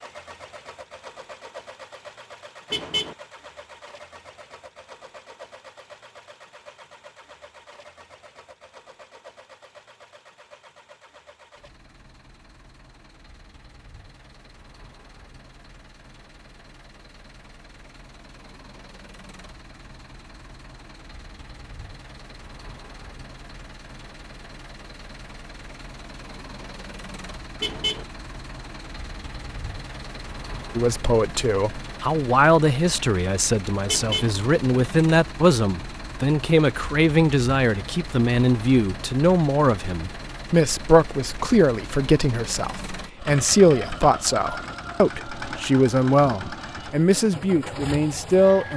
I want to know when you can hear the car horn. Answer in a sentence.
You can hear the car horn from 2.7 to 3.1 s, from 27.6 to 28.1 s and from 33.9 to 34.4 s.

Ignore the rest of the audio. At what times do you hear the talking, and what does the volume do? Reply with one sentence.
You can hear the talking from 30.8 to 48.7 s, at a steady volume.